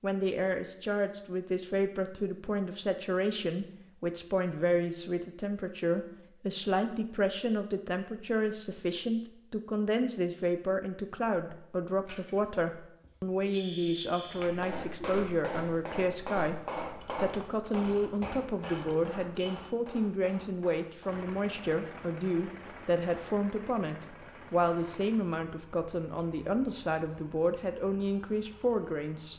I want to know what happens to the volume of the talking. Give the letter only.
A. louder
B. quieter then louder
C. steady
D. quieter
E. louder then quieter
C.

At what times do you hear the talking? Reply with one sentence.
You can hear the talking from 0.0 to 29.3 s.